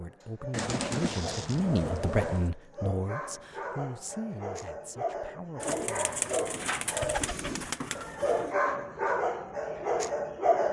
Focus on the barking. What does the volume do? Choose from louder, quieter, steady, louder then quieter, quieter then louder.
louder.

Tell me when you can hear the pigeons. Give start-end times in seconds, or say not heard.
0.5-2.5, 5.6-8.5.